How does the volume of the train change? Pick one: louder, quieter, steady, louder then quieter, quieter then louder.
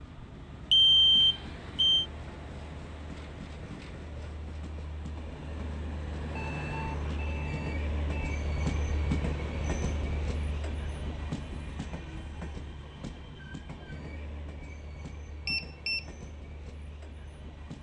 louder then quieter.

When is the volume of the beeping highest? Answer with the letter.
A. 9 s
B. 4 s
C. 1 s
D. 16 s
C.